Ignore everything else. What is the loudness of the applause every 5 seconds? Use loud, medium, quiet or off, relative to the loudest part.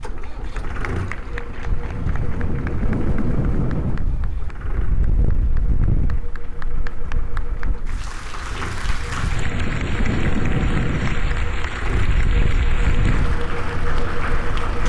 medium, loud, loud.